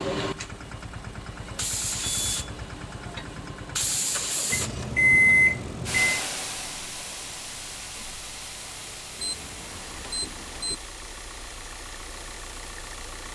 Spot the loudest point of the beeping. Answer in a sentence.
The volume of the beeping peaks at 5 seconds.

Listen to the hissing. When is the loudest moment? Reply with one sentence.
The loudest moment of the hissing is at 4 seconds.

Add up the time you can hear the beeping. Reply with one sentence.
The beeping can be heard for 4 seconds in total.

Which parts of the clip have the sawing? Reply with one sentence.
The sawing can't be heard in this clip.